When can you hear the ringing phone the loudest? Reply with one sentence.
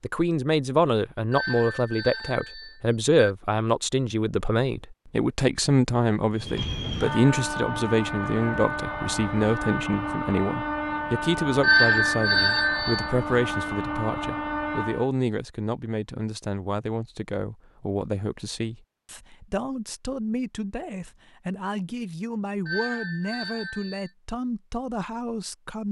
The volume of the ringing phone peaks at 12 seconds.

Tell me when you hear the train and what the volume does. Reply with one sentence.
You can hear the train from 6.3 to 15.1 s, at a steady volume.